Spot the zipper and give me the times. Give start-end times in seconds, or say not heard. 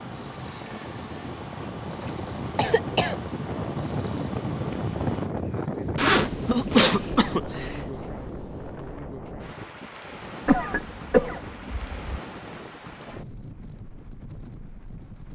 6.0-7.4.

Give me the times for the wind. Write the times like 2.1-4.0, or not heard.
0.0-15.3.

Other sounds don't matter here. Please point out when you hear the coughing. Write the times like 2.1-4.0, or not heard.
2.0-3.1, 6.5-7.8, 10.4-12.2.